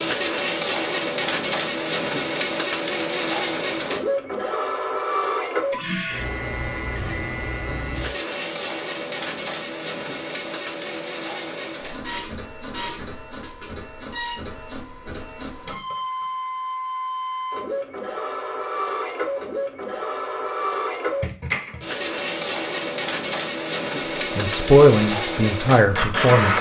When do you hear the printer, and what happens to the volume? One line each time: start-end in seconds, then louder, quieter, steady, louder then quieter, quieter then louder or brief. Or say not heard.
0.0-26.5 quieter then louder.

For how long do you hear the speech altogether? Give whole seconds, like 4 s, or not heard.
2 s.